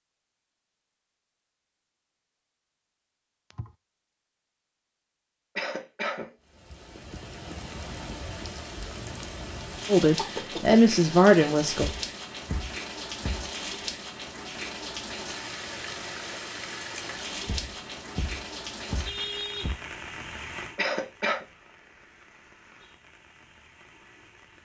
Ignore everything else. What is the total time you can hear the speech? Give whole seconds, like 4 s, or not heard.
2 s.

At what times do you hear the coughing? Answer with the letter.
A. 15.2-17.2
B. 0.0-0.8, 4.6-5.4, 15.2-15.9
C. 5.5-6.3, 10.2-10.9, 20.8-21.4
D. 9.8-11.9
C.